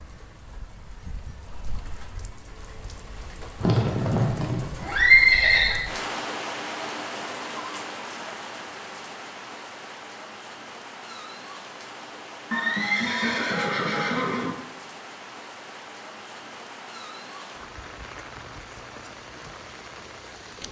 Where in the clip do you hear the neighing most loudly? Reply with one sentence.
The loudest moment of the neighing is at 5 seconds.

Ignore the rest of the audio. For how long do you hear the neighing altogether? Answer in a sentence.
The neighing can be heard for 4 seconds in total.